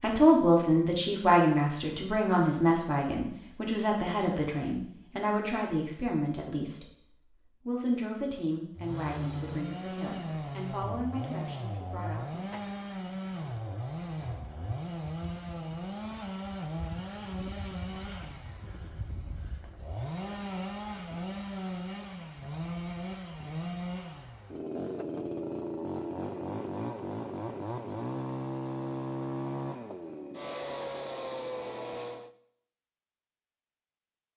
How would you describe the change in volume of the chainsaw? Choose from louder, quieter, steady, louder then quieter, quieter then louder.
steady.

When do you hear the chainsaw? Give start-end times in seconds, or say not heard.
8.8-32.3.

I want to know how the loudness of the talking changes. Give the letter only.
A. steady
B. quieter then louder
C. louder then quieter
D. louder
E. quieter
E.